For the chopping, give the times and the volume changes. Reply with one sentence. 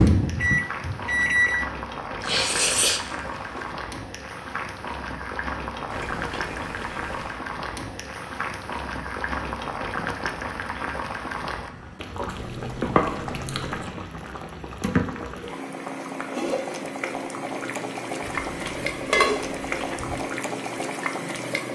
The chopping can't be heard in this clip.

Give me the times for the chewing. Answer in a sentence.
You can hear the chewing from 2.2 to 3.8 s, from 5.9 to 7.4 s, from 12.2 to 13.9 s and from 18.2 to 20.2 s.